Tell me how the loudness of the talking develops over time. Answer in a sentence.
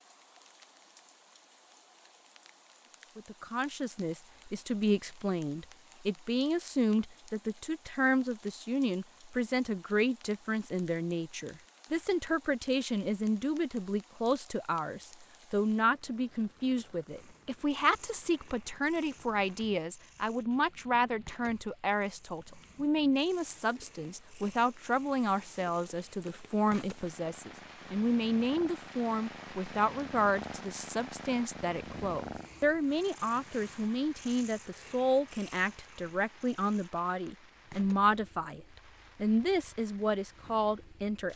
The loudness of the talking stays about the same.